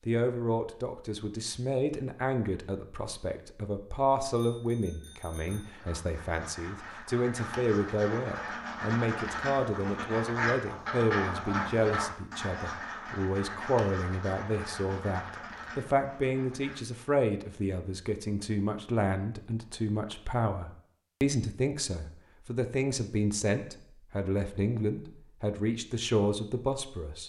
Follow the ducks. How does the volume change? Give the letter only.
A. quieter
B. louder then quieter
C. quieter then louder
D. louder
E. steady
B.